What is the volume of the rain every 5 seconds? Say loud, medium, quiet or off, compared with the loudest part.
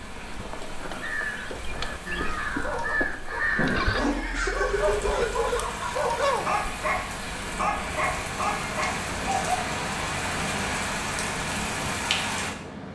medium, loud, loud.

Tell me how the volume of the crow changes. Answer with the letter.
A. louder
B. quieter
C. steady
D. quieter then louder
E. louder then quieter
E.